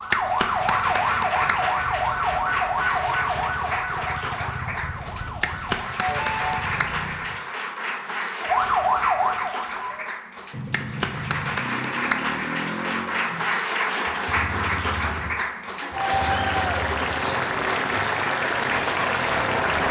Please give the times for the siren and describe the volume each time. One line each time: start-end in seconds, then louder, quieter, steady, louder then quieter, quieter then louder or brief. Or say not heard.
0.0-6.7 quieter
8.4-10.1 brief.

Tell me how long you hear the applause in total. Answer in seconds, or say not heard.
20 s.